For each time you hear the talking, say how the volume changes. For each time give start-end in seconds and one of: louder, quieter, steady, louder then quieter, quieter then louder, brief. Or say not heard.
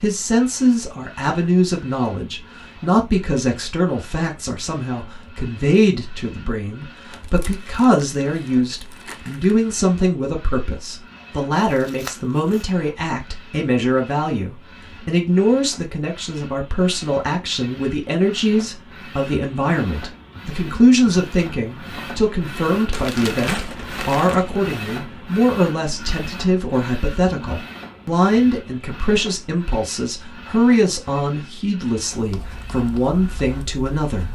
0.0-34.2 steady.